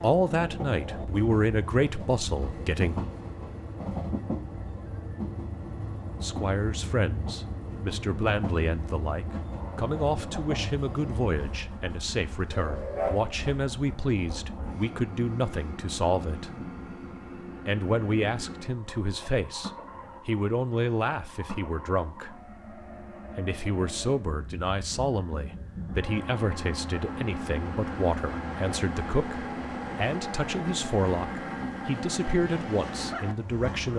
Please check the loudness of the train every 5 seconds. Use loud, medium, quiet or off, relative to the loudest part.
loud, loud, loud, medium, medium, loud, loud.